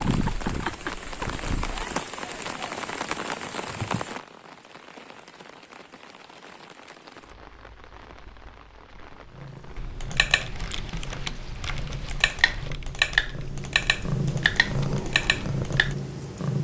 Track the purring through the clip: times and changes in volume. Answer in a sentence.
The purring can be heard briefly from 0.1 to 2.0 s; and from 9.2 to 16.5 s, getting louder.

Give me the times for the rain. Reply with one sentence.
The rain can be heard from 0.0 to 12.7 s.